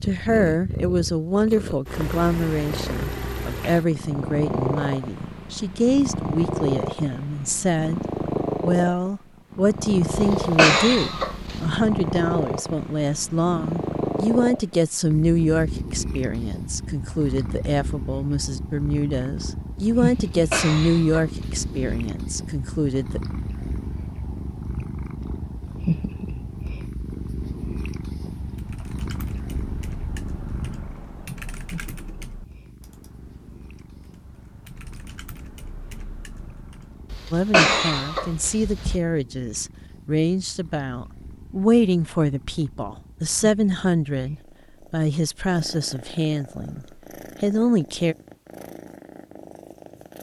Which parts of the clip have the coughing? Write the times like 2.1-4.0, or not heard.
10.2-11.8, 20.1-21.9, 37.1-39.0.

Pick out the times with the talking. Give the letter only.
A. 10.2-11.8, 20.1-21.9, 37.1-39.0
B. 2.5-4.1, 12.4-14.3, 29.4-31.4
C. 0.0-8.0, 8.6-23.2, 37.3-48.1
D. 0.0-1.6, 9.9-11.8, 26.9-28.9
C.